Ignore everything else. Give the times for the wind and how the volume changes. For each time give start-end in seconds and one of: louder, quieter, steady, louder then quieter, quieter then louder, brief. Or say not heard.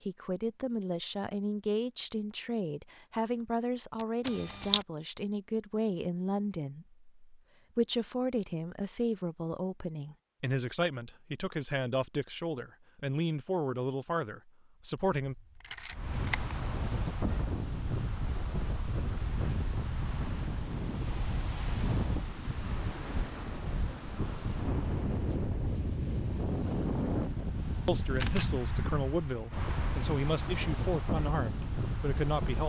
15.9-32.6 steady.